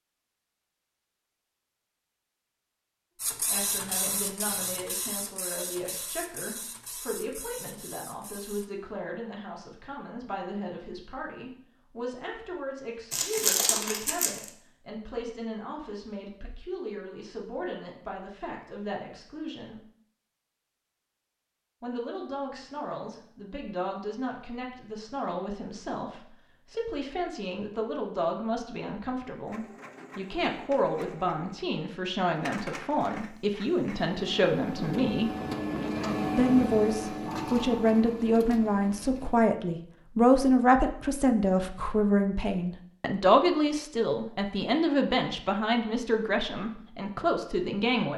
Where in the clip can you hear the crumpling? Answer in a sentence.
The crumpling can be heard from 13.1 to 14.5 s.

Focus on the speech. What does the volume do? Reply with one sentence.
The loudness of the speech goes up.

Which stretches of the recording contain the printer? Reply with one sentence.
You can hear the printer from 3.2 to 8.7 s and from 29.4 to 39.4 s.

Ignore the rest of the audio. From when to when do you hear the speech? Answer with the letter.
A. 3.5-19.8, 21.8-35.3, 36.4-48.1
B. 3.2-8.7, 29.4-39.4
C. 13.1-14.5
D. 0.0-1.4
A.